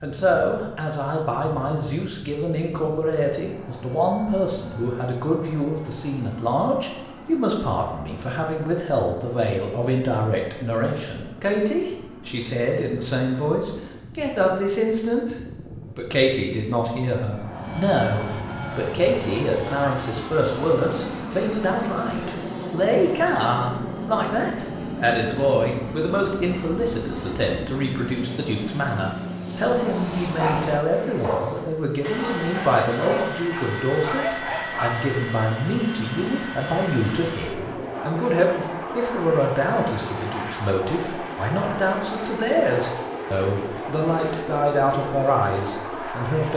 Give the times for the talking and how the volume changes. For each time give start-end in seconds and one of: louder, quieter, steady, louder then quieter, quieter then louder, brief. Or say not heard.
0.0-15.3 steady
15.9-46.5 steady.